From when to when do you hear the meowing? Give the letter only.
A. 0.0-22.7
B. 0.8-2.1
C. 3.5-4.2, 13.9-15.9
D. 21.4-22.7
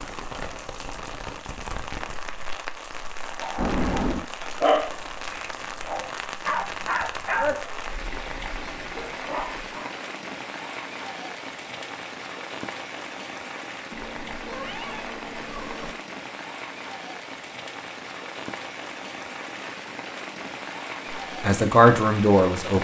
C.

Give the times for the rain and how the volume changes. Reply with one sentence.
The rain can be heard from 0.0 to 22.7 s, at a steady volume.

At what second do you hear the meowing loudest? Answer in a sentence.
The volume of the meowing peaks at 4 seconds.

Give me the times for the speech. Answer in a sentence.
The speech can be heard from 21.4 to 22.7 s.